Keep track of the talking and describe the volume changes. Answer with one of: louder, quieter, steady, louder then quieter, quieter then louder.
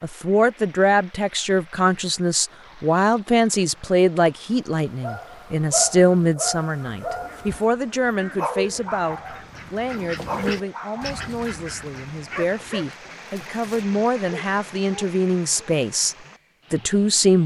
quieter then louder.